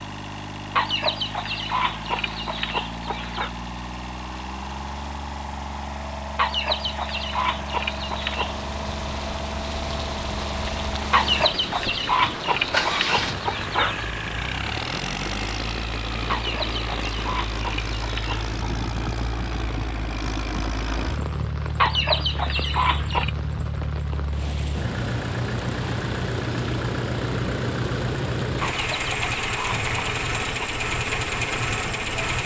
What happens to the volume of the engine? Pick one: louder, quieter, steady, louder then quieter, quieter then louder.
louder.